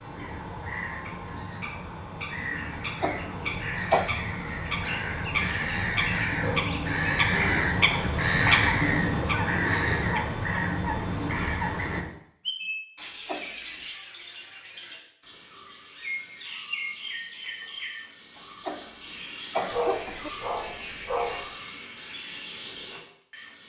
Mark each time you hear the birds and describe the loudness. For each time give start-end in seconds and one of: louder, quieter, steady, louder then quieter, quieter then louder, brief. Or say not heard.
0.0-23.6 louder then quieter.